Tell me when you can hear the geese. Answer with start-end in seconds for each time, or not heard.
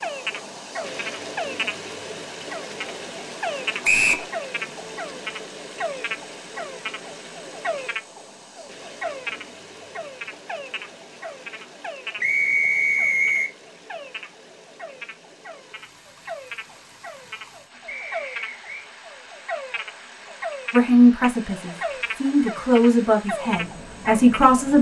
not heard.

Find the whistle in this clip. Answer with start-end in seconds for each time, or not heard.
3.8-4.2, 12.2-13.5, 17.9-18.9.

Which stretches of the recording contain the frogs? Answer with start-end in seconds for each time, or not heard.
0.0-24.6.